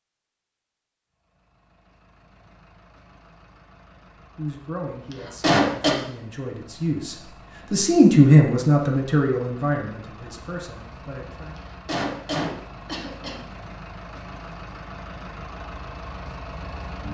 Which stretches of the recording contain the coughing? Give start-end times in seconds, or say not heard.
5.1-6.0, 11.6-13.3.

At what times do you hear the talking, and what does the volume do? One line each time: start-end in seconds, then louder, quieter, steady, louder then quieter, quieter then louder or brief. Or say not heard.
4.3-11.6 louder then quieter.